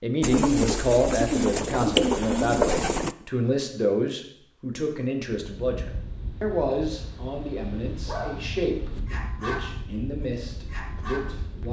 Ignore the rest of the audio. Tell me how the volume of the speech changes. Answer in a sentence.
The volume of the speech goes down.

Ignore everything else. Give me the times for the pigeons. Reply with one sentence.
You can hear the pigeons from 0.2 to 3.1 s.